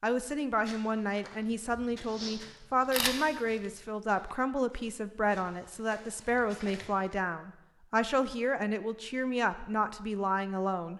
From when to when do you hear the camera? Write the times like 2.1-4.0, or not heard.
2.9-3.8.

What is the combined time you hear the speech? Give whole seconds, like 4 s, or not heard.
11 s.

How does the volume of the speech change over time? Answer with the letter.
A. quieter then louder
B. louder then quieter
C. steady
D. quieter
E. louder
C.